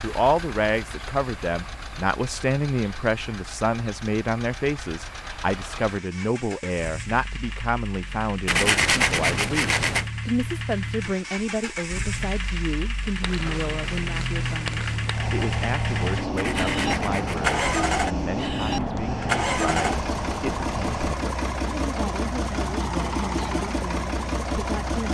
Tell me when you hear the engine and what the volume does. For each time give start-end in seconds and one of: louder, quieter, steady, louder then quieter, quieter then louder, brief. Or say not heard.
0.0-25.1 louder.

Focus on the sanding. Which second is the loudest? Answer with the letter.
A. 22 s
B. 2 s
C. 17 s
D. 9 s
D.